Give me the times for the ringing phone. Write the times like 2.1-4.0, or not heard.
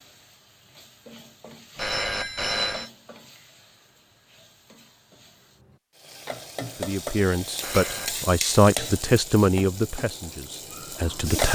1.8-2.9, 7.6-8.2.